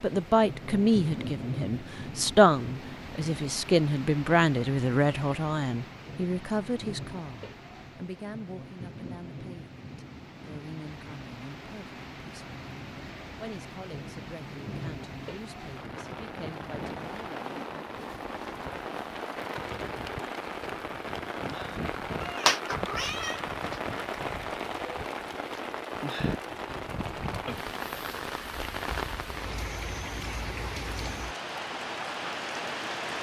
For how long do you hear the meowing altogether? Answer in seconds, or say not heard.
2 s.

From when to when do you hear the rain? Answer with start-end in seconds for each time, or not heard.
0.0-33.1.